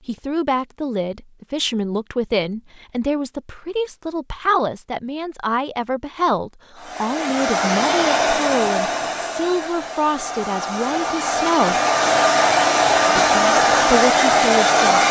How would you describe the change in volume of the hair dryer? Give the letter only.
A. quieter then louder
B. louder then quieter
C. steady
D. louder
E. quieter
A.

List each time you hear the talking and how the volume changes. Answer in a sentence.
You can hear the talking from 0.1 to 11.8 s, at a steady volume; and briefly from 13.1 to 15.0 s.